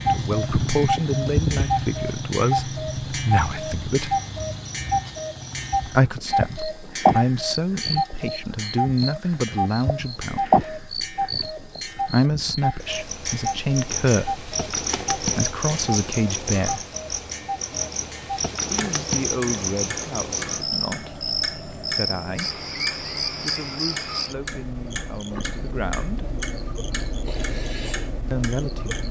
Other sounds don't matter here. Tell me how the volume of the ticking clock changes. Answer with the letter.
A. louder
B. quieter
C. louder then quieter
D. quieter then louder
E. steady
B.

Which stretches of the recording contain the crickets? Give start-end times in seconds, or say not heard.
0.0-29.0.